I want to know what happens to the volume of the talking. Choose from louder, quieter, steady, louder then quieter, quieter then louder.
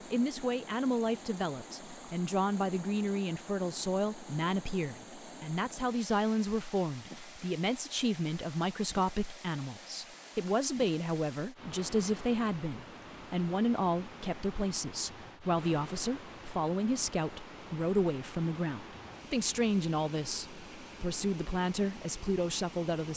steady.